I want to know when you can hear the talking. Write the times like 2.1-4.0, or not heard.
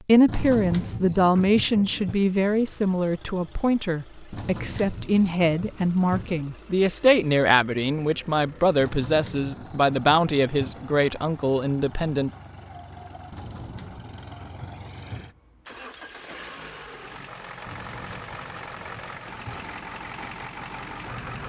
0.1-12.3.